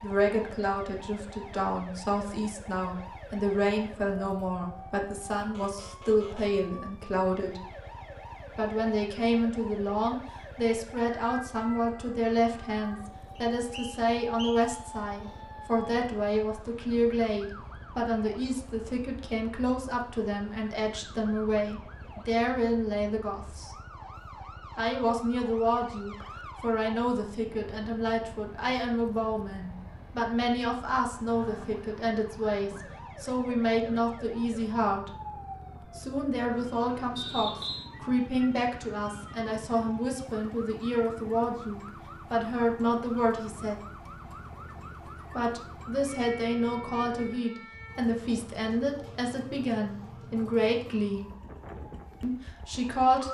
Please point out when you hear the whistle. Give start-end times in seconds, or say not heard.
13.5-14.8, 37.1-37.9.